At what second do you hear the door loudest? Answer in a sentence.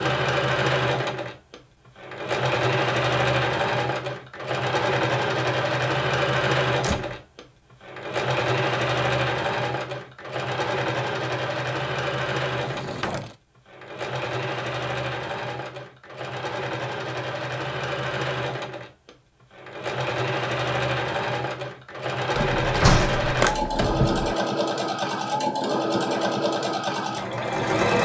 The loudest moment of the door is at 23 seconds.